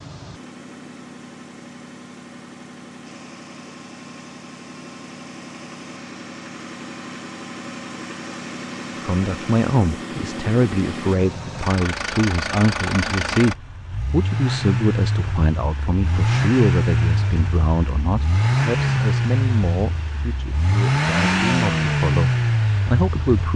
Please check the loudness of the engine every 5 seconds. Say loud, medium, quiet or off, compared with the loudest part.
quiet, quiet, medium, loud, loud.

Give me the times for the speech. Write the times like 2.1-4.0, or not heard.
9.0-23.5.